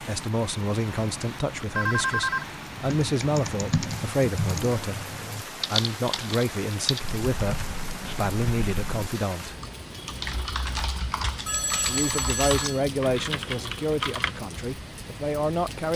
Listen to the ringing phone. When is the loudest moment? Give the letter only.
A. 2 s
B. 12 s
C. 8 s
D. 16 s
A.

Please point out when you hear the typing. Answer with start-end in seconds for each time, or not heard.
2.9-14.4.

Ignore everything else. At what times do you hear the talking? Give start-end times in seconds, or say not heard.
0.0-5.0, 5.7-9.6, 11.8-15.9.